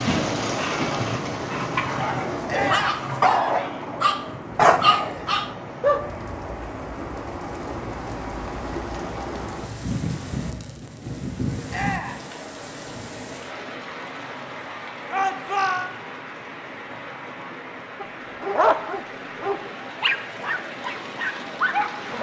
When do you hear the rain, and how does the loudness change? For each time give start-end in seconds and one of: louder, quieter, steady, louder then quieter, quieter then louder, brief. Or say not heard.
0.0-22.1 quieter.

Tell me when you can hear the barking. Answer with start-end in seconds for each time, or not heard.
0.0-6.0, 18.0-22.1.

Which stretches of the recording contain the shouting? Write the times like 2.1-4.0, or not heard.
2.5-2.9, 11.7-12.2, 15.1-15.9.